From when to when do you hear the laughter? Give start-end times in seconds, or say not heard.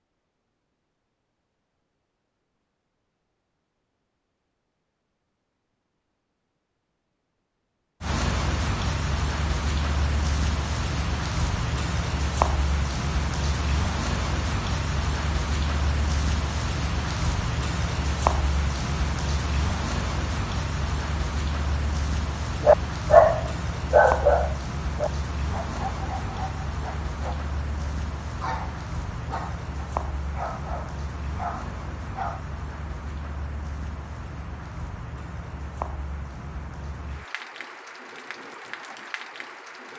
not heard.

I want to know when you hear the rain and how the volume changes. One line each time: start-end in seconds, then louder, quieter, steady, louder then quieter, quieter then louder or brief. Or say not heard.
8.0-39.9 quieter.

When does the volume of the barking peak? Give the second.
23 s.